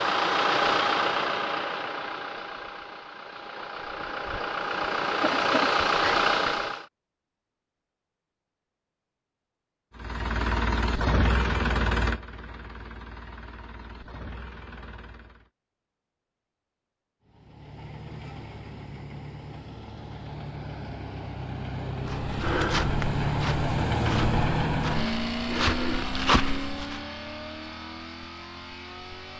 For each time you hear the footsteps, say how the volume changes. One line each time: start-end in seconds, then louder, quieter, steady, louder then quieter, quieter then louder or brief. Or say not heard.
22.1-27.0 quieter then louder.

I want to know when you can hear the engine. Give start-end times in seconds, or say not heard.
0.0-6.8, 9.9-15.5, 17.2-29.3.